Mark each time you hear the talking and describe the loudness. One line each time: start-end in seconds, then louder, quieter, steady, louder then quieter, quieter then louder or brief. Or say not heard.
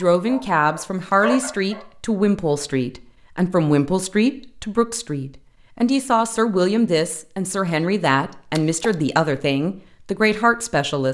0.0-11.0 steady.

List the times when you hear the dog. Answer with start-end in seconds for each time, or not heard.
0.1-1.9.